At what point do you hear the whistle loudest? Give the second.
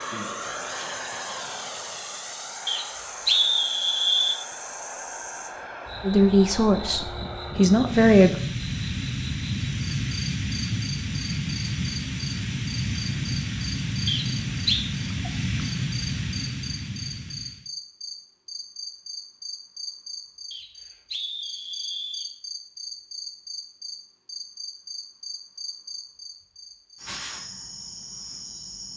3 s.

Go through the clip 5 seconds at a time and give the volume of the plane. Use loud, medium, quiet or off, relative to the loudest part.
medium, loud, loud, loud, off, off.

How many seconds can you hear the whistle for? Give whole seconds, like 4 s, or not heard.
4 s.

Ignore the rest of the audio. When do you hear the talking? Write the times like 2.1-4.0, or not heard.
6.0-8.4.